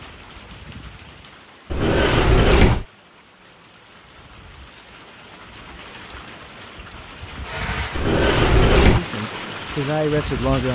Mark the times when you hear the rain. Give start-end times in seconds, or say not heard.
0.0-10.7.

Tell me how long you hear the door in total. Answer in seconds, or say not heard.
2 s.